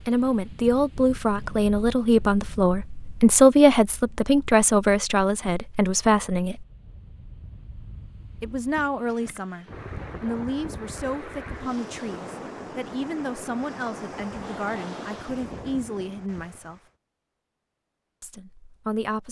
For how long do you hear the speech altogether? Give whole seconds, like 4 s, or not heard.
16 s.